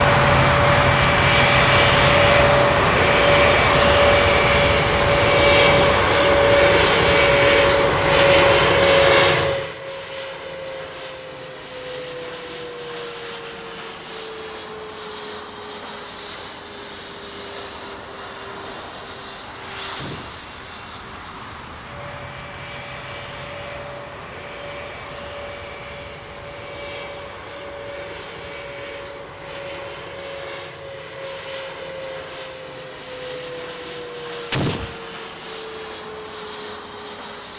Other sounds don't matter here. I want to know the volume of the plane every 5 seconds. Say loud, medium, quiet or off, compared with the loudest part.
loud, loud, quiet, quiet, quiet, quiet, quiet, quiet.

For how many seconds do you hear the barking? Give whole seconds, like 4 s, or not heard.
not heard.